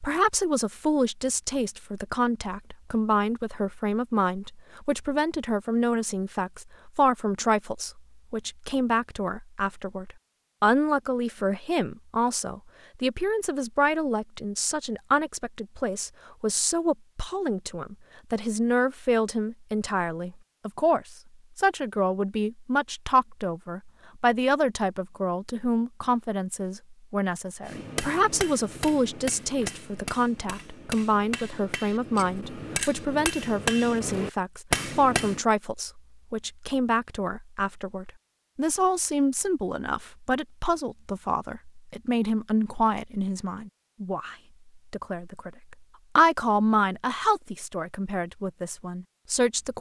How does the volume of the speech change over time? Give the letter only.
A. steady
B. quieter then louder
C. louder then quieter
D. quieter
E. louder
A.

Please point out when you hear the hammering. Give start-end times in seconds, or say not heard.
27.6-35.4.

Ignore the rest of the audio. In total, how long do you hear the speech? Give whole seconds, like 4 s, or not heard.
50 s.